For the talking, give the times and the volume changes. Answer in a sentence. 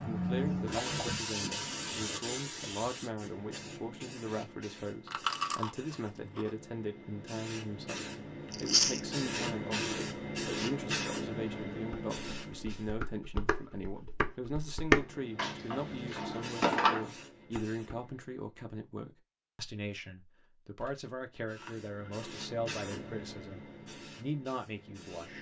You can hear the talking from 0.1 to 25.3 s, at a steady volume.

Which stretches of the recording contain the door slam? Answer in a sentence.
You can't hear the door slam here.